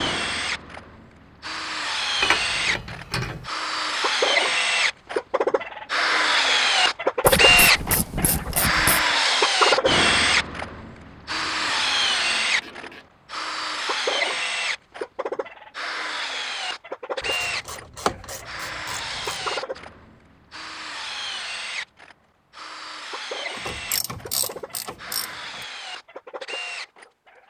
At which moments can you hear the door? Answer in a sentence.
The door can't be heard in this clip.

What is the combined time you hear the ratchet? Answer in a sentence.
You can hear the ratchet for 9 seconds altogether.